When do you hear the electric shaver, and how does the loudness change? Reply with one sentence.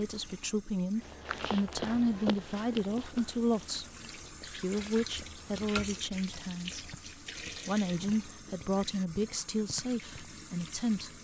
You can't hear the electric shaver here.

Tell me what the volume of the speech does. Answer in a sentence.
The loudness of the speech stays about the same.